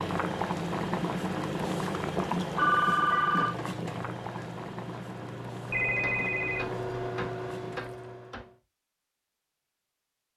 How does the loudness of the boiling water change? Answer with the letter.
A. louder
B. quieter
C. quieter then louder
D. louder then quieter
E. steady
B.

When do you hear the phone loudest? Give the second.
3 s.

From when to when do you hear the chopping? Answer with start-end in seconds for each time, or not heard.
6.0-8.5.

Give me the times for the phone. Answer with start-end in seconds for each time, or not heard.
2.5-3.5, 5.7-6.9.